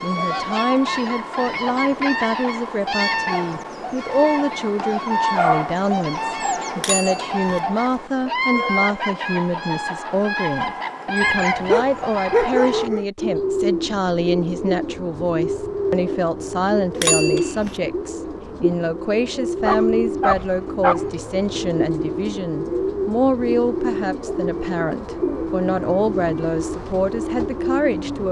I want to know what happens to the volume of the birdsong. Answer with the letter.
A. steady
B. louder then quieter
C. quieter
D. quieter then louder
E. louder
A.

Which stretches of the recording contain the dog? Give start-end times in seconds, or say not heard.
4.8-6.4, 11.2-13.1, 19.6-21.1.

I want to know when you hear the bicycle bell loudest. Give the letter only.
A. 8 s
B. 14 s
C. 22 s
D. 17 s
D.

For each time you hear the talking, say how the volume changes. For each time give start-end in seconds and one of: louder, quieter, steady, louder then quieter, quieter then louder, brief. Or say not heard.
0.0-28.2 steady.